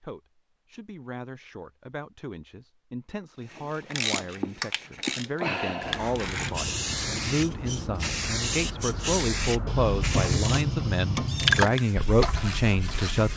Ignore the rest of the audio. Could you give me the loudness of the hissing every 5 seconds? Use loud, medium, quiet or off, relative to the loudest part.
off, loud, loud.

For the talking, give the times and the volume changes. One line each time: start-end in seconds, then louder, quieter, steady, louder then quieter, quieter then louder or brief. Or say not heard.
0.0-13.3 louder.